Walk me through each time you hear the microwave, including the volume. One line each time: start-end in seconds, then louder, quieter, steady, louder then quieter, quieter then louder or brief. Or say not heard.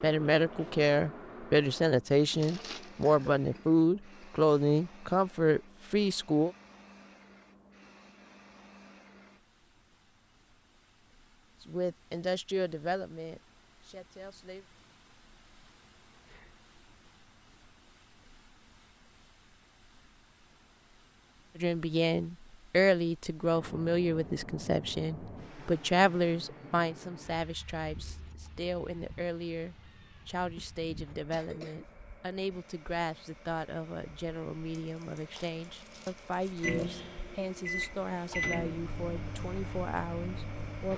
36.6-40.9 louder then quieter.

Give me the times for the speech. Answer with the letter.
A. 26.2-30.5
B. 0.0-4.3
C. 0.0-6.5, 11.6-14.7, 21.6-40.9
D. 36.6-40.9
C.